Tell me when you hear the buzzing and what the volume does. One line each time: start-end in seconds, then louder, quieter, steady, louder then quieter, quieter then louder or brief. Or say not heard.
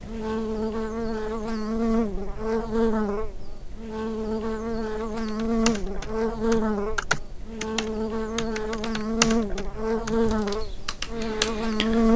0.0-12.1 steady.